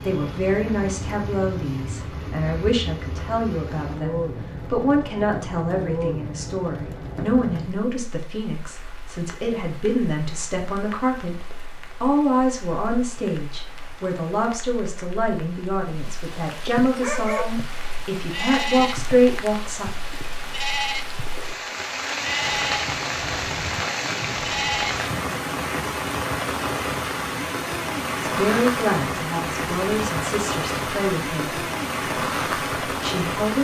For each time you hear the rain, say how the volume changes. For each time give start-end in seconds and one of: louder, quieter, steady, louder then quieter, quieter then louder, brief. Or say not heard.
0.0-33.5 quieter then louder.